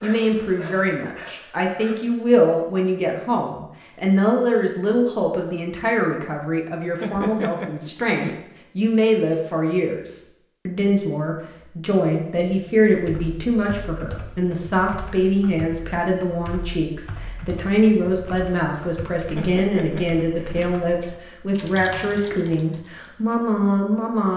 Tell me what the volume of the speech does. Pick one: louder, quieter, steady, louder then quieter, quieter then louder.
steady.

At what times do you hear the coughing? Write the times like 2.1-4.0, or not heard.
7.0-8.3, 19.4-20.6.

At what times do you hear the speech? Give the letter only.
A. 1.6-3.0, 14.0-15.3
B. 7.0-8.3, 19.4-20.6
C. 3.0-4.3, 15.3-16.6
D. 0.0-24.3
D.